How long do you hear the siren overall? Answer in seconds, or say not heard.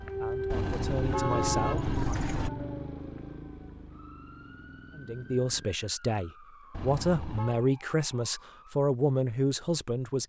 9 s.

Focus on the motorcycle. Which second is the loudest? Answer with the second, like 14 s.
2 s.